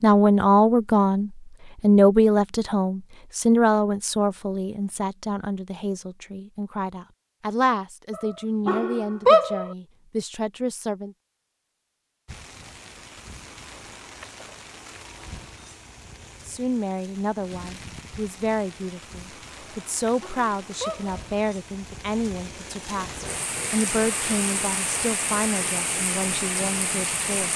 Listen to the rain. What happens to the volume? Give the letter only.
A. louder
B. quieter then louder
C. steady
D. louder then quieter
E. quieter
A.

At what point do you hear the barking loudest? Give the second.
9 s.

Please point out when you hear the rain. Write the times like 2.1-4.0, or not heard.
12.2-27.5.